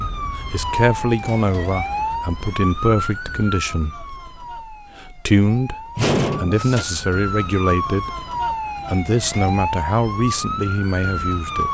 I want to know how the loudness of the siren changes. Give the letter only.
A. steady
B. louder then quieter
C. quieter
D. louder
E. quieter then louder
E.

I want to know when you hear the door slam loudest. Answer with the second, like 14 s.
6 s.